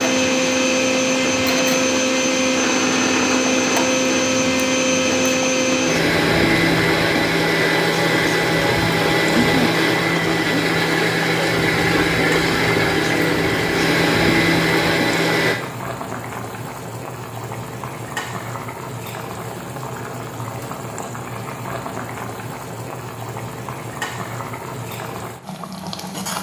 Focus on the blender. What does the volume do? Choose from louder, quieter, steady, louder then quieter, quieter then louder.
steady.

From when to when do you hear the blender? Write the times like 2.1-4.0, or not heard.
0.0-15.6.